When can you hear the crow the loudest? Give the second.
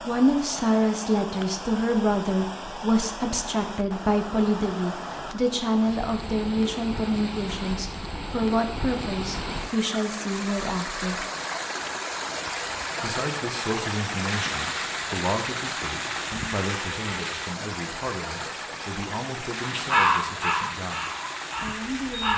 20 s.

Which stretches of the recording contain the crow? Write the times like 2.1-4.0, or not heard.
19.6-22.3.